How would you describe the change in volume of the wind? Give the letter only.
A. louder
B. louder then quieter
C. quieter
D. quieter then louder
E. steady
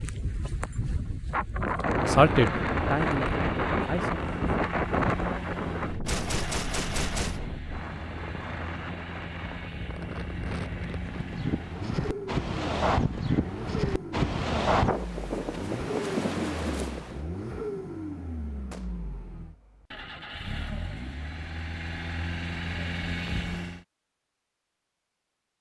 D.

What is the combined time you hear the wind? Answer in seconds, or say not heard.
17 s.